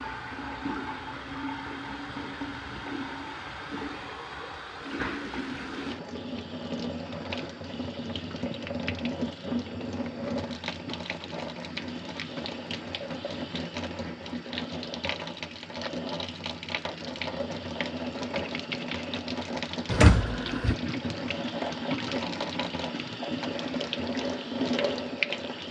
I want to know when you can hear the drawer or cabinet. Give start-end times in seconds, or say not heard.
19.9-20.8.